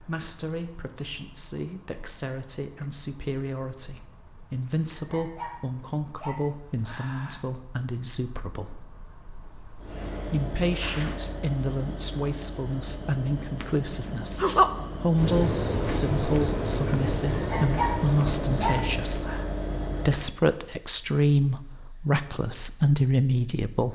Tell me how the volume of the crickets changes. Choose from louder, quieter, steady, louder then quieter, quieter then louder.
louder then quieter.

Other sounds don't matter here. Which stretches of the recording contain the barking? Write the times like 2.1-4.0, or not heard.
5.0-7.5, 17.4-19.4.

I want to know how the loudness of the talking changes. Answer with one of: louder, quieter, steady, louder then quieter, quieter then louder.
louder.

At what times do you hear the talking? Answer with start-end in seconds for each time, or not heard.
0.0-8.9, 10.2-19.4, 20.1-23.8.